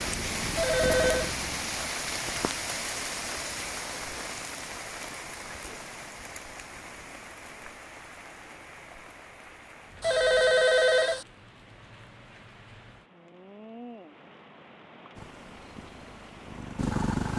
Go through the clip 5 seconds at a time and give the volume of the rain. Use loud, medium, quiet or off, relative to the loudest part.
loud, medium, quiet, quiet.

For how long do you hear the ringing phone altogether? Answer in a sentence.
The ringing phone can be heard for 2 seconds in total.